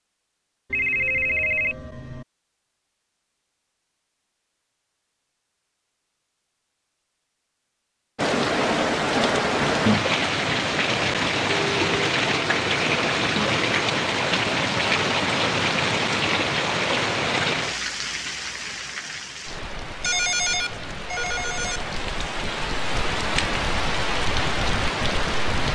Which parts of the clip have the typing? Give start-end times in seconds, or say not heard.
not heard.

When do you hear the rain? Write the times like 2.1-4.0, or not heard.
8.2-25.7.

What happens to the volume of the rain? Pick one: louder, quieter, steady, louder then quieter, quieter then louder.
quieter then louder.